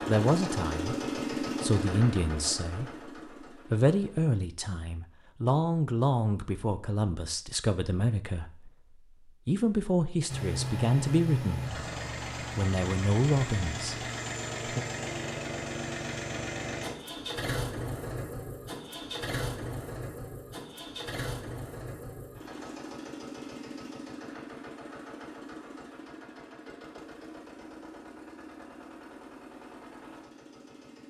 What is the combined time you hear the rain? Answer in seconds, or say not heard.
not heard.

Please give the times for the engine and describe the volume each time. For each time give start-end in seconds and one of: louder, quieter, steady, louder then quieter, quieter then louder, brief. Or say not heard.
0.0-4.3 quieter
10.2-31.0 quieter.